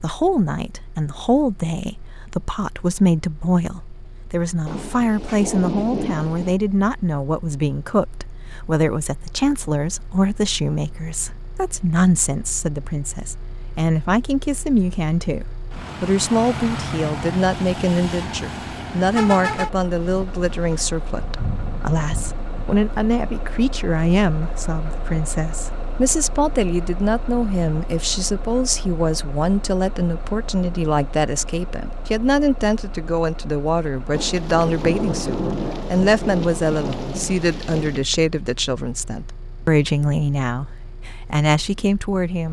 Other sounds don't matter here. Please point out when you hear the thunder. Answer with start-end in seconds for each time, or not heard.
4.7-6.5, 20.1-22.8, 34.1-38.0.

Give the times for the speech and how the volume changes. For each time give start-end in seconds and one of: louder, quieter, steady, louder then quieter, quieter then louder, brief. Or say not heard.
0.0-42.4 steady.